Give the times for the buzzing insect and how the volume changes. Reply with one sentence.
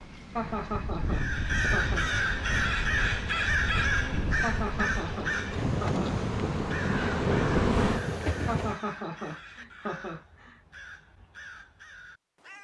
You can hear the buzzing insect from 1.9 to 8.7 s, getting louder.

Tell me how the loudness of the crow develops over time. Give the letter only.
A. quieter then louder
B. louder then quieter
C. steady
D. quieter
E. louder
D.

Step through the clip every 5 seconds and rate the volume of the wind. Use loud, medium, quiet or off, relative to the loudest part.
medium, loud, off.